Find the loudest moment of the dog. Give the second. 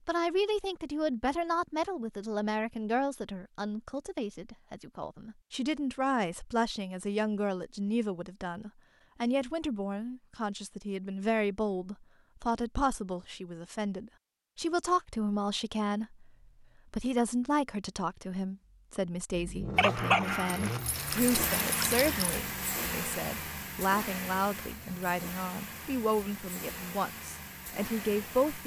20 s.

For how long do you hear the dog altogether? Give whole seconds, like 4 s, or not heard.
3 s.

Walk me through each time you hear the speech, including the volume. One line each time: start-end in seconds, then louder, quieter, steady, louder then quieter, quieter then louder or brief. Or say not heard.
0.1-28.6 steady.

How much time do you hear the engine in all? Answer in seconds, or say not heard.
9 s.